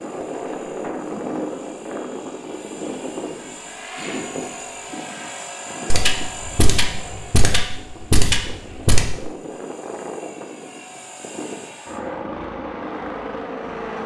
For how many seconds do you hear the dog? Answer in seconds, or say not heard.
not heard.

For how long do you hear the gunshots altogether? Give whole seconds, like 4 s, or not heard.
3 s.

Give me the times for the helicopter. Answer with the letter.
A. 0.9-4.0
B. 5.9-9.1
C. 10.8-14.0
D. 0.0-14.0
D.